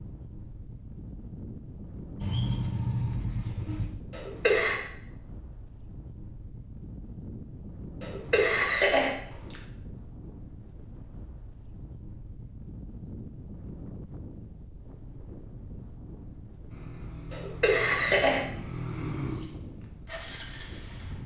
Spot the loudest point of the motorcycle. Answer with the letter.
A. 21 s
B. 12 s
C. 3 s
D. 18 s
C.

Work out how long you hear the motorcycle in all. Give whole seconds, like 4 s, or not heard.
6 s.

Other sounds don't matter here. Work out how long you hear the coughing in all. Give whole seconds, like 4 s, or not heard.
3 s.